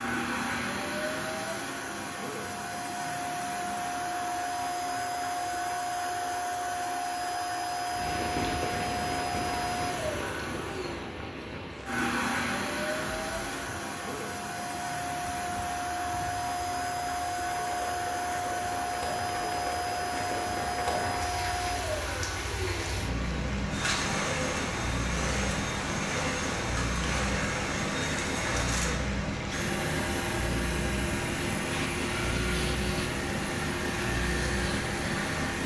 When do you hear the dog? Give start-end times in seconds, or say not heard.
not heard.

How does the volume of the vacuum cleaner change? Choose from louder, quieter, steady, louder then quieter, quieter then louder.
steady.